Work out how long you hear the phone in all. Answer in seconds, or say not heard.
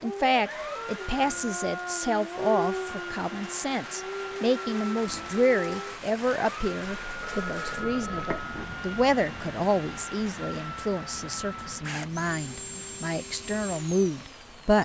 2 s.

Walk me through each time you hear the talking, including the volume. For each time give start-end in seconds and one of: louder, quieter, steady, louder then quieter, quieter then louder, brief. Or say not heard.
0.0-14.8 steady.